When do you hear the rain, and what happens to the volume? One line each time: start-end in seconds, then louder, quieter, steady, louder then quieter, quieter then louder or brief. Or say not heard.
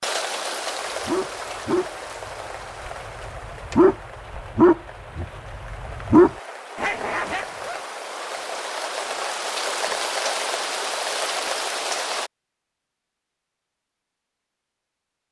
0.0-12.3 quieter then louder.